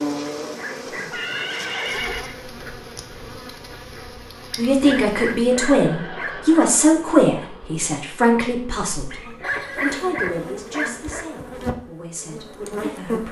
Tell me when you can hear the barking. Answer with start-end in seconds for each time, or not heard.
0.4-1.6, 4.7-6.7, 9.1-11.2.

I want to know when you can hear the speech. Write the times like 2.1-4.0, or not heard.
4.5-13.2.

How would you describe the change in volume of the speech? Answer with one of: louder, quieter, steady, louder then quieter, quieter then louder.
quieter.